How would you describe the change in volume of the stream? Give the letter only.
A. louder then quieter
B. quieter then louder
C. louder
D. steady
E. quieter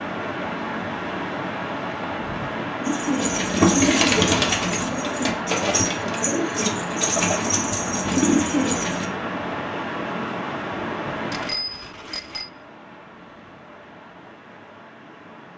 E.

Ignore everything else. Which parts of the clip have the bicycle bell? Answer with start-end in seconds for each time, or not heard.
11.3-12.5.